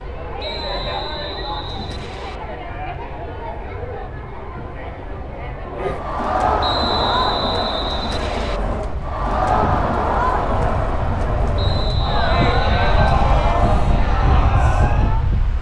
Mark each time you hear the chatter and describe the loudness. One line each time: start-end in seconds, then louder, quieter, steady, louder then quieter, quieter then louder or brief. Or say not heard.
0.0-15.5 louder.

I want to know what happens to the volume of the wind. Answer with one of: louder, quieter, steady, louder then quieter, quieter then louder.
louder.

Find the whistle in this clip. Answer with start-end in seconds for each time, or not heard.
0.3-2.4, 6.6-8.6, 11.6-13.6.